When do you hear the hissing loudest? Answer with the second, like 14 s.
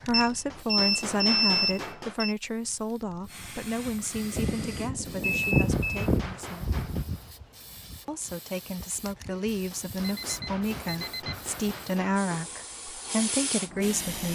6 s.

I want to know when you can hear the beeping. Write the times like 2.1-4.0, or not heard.
0.1-2.4, 5.2-6.1, 10.0-11.4.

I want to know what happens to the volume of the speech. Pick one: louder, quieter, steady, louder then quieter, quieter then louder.
quieter then louder.